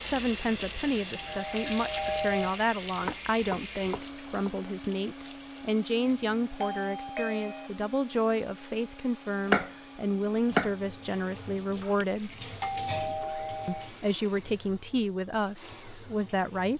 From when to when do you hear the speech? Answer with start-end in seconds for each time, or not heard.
0.0-12.3, 13.7-16.7.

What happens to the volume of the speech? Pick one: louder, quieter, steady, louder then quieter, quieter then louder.
steady.